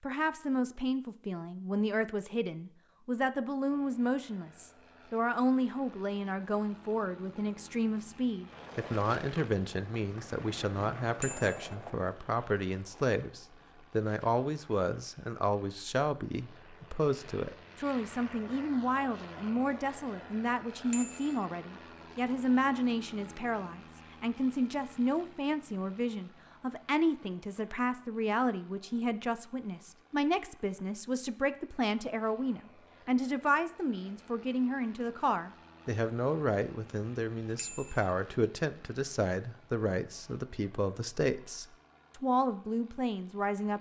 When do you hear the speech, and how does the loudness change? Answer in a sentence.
The speech can be heard from 0.0 to 43.7 s, at a steady volume.